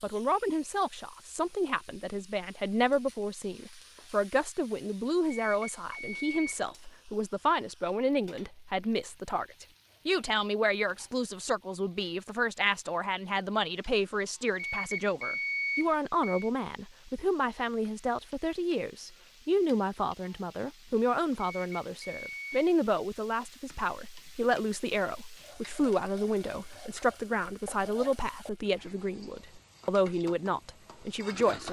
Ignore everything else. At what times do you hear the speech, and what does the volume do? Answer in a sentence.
You can hear the speech from 0.0 to 31.6 s, at a steady volume.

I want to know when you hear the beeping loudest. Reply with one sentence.
The volume of the beeping peaks at 16 seconds.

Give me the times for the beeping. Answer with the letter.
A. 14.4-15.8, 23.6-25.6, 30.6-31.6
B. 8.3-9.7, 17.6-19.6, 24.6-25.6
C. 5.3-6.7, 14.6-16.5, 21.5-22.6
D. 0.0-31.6
C.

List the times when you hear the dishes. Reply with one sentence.
You can't hear the dishes here.